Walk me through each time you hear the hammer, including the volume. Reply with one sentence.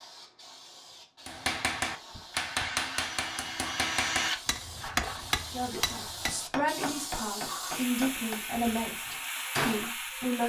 You can hear the hammer from 1.2 to 9.8 s, getting quieter.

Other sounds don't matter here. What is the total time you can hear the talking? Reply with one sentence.
The talking can be heard for 5 seconds in total.